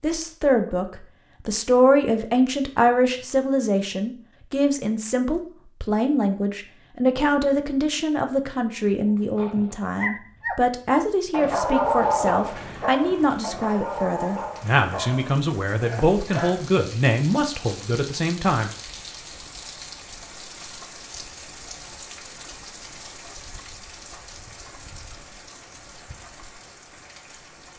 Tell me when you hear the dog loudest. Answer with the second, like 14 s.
12 s.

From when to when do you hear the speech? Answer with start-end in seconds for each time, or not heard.
0.0-18.7.